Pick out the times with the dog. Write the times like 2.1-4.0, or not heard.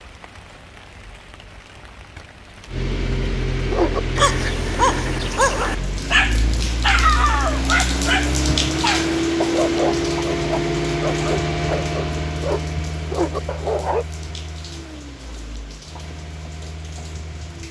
3.7-14.1.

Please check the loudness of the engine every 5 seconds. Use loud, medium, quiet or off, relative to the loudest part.
loud, loud, loud, quiet.